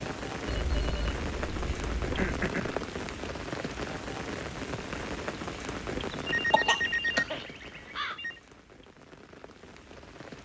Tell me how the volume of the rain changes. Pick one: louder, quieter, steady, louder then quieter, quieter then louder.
quieter.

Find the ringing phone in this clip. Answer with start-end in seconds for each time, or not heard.
0.5-2.4, 6.1-8.4.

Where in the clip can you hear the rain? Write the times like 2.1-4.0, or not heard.
0.0-10.4.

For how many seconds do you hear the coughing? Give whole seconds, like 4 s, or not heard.
2 s.